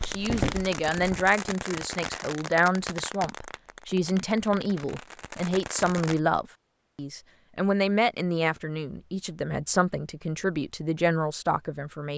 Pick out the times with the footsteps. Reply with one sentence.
You can hear the footsteps from 0.0 to 1.4 s.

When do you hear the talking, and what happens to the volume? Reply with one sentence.
You can hear the talking from 0.1 to 12.1 s, at a steady volume.